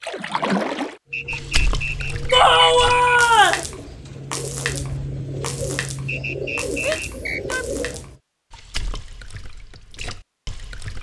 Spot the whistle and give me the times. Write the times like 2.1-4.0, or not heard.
1.1-3.2, 6.0-7.4.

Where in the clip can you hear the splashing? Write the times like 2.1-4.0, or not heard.
0.0-10.9.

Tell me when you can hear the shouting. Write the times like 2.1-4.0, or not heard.
2.3-3.6, 6.8-7.8.